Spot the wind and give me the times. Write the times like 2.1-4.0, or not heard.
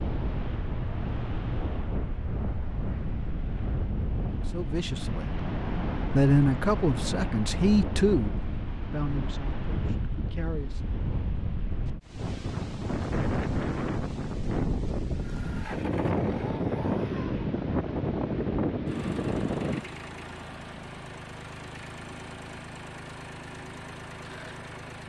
0.0-19.9.